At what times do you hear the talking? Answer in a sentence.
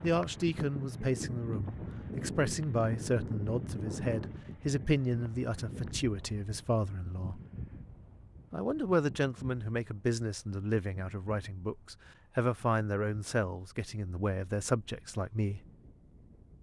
The talking can be heard from 0.0 to 7.4 s and from 8.5 to 15.6 s.